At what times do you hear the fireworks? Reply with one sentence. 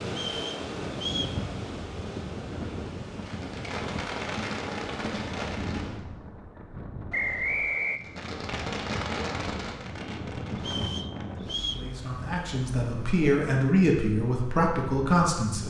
The fireworks can be heard from 3.2 to 6.0 s and from 8.0 to 10.8 s.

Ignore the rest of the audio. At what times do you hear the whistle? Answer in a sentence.
You can hear the whistle from 0.1 to 1.4 s, from 7.1 to 8.0 s and from 10.6 to 11.8 s.